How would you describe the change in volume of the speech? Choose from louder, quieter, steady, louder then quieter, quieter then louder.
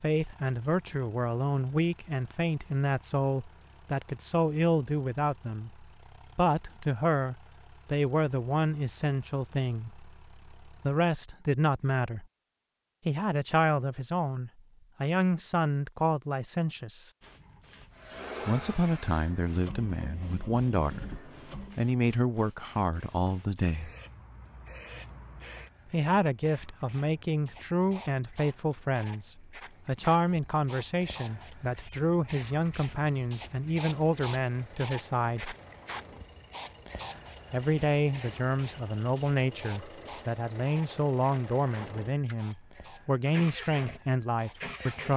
steady.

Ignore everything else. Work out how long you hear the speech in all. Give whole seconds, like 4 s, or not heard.
39 s.